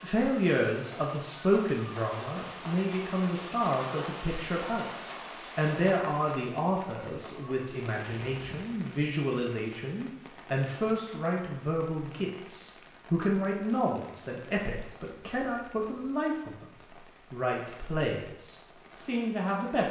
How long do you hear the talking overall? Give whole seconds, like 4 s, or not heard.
20 s.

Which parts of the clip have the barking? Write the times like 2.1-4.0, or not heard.
not heard.